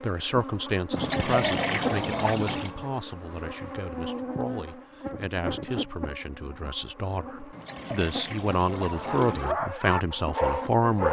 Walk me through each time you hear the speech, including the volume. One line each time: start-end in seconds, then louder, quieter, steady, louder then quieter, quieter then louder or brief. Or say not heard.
0.0-11.0 quieter then louder.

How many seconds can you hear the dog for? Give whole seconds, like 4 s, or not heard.
2 s.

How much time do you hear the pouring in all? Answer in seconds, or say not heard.
4 s.